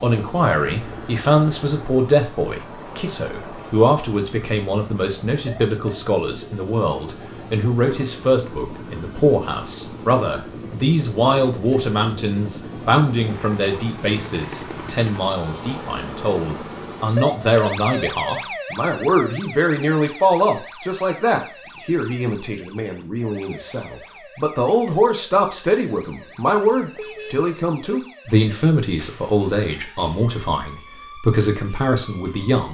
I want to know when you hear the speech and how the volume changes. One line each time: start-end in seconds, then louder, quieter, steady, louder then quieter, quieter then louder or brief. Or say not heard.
0.0-32.6 steady.